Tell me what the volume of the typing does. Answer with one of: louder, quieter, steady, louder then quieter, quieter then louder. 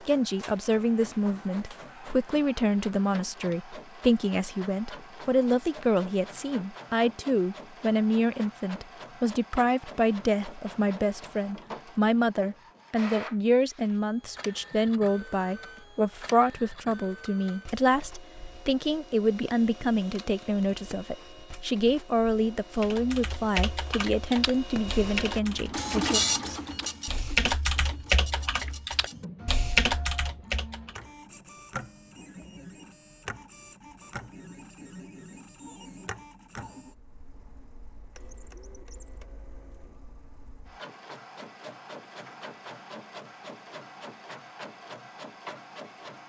louder.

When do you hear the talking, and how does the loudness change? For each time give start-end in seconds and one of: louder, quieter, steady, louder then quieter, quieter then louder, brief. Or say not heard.
0.1-26.2 steady.